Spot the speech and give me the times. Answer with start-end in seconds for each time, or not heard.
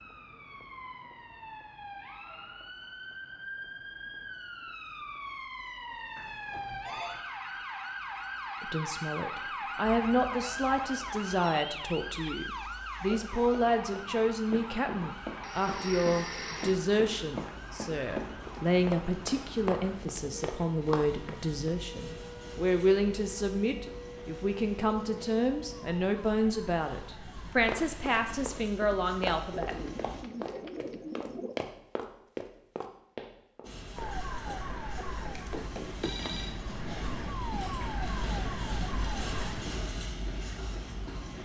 8.6-29.8.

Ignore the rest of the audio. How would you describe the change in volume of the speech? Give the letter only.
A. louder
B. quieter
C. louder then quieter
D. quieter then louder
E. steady
E.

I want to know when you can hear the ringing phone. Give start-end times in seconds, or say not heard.
6.2-7.2, 15.4-16.8, 35.3-36.5.